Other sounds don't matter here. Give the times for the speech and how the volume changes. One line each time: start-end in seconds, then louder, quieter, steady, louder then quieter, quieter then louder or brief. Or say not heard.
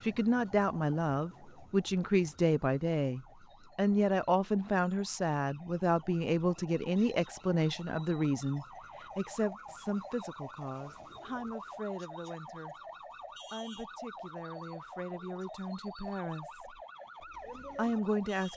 0.0-16.8 quieter
17.8-18.5 brief.